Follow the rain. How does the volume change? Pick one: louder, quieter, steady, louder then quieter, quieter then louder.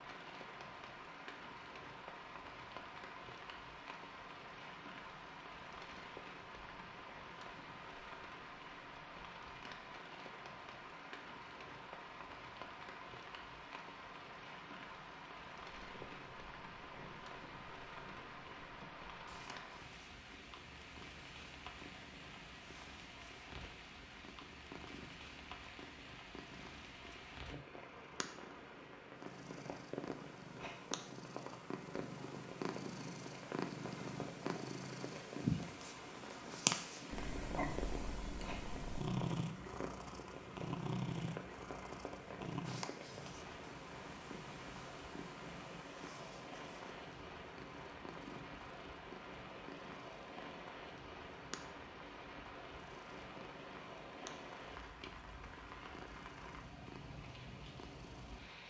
steady.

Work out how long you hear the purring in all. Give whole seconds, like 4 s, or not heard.
43 s.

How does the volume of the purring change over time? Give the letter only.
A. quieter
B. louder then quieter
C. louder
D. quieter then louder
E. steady
B.